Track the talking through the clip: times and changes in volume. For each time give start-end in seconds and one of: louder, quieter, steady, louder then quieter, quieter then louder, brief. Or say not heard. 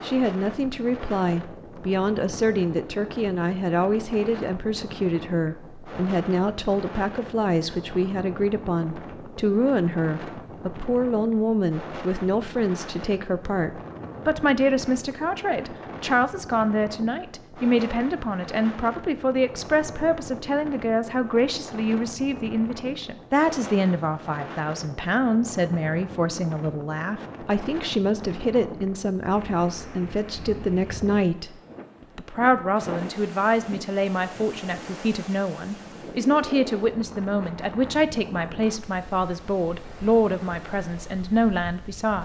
0.0-42.2 steady.